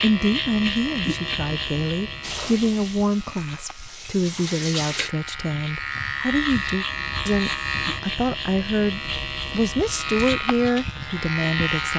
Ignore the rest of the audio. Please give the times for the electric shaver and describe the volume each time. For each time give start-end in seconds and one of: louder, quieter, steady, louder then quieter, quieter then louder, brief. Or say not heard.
0.0-11.9 quieter then louder.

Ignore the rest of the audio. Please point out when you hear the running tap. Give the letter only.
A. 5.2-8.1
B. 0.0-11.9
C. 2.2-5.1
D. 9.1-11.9
C.